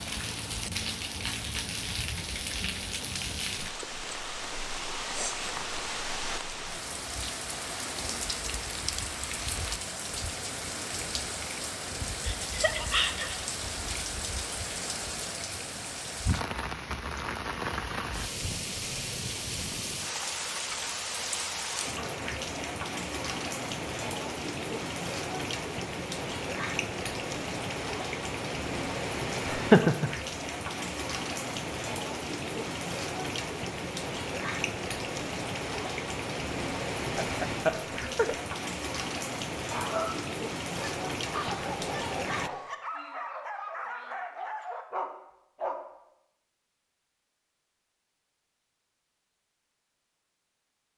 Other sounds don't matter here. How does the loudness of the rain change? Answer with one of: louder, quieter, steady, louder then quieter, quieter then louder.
steady.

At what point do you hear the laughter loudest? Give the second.
30 s.